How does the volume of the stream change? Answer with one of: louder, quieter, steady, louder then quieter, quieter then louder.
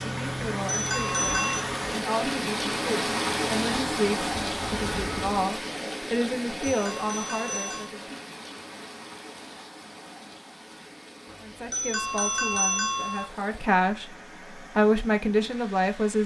quieter.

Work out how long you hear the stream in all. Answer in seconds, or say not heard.
16 s.